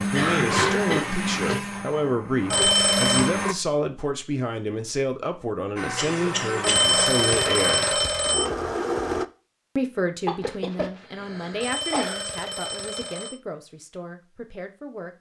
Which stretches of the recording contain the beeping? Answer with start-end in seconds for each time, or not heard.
2.5-3.3, 6.6-8.4, 11.6-13.3.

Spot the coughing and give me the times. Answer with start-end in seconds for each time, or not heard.
0.1-1.1, 6.0-6.8, 10.2-12.2.